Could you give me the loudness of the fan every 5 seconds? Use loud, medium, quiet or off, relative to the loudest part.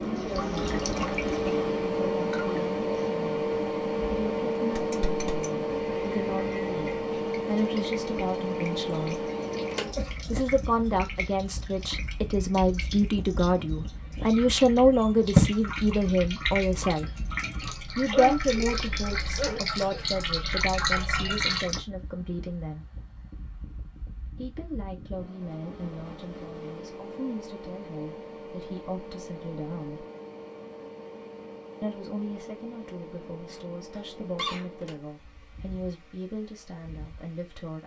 loud, loud, quiet, quiet, quiet, quiet, quiet, quiet.